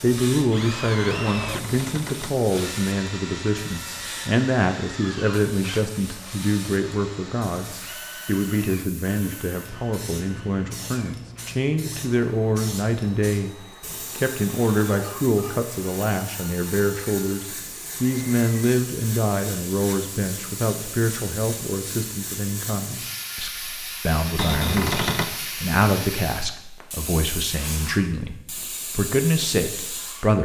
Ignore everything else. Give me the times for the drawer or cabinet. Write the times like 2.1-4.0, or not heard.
1.2-2.4, 24.4-25.3.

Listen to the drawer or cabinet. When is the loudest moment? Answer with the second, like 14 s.
25 s.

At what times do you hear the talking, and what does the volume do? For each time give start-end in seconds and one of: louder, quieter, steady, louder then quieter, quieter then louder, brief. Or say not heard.
0.0-30.4 steady.